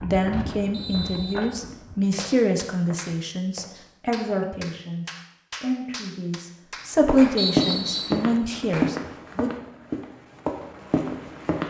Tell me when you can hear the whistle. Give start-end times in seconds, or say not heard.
0.7-1.4, 7.3-8.2.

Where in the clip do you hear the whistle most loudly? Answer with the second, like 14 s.
8 s.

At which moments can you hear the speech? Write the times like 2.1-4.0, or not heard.
0.0-9.5.